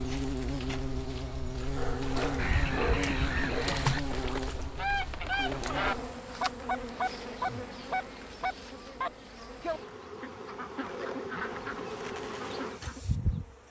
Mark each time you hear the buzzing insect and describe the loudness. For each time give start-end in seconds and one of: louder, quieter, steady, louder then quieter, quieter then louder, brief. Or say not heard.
0.0-13.6 quieter then louder.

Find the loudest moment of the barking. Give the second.
3 s.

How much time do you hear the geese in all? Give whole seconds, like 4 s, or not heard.
11 s.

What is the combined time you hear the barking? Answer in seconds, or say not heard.
2 s.